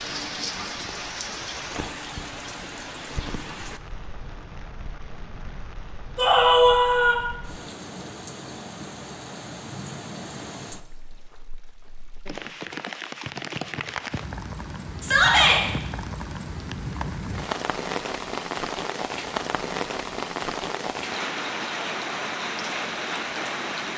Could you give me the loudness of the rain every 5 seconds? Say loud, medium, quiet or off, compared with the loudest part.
medium, medium, medium, loud, loud.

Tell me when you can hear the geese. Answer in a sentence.
You can't hear the geese here.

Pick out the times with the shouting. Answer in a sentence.
You can hear the shouting from 6.2 to 7.2 s and from 15.0 to 15.6 s.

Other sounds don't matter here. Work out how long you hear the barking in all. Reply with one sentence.
You can't hear the barking here.